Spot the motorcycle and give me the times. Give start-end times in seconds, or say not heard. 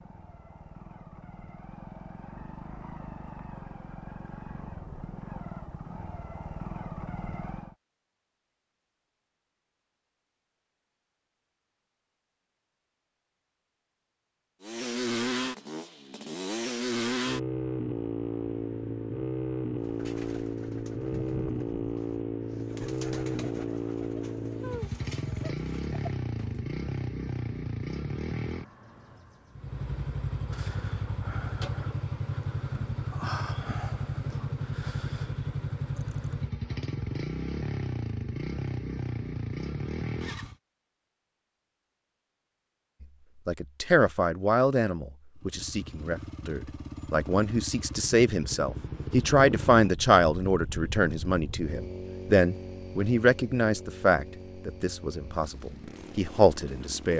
0.0-7.8, 14.6-40.5, 45.4-57.1.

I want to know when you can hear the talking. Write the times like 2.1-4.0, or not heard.
43.5-57.1.